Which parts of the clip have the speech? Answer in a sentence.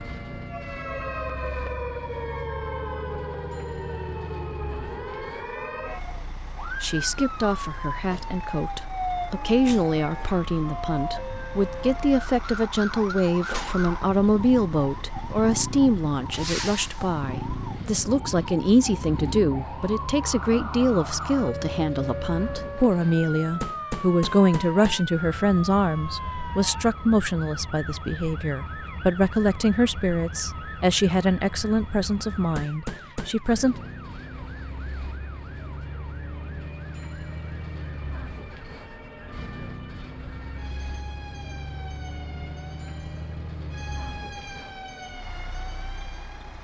You can hear the speech from 6.6 to 33.8 s.